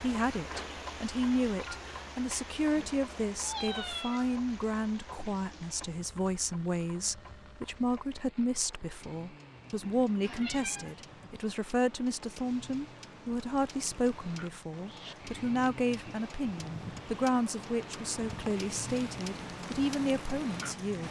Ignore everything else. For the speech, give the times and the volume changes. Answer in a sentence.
The speech can be heard from 0.0 to 21.0 s, at a steady volume.